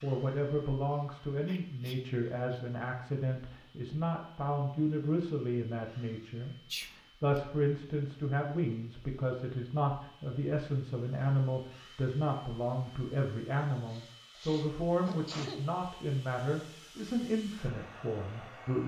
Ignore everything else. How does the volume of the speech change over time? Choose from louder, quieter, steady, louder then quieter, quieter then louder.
steady.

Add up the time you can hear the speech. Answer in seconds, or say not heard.
19 s.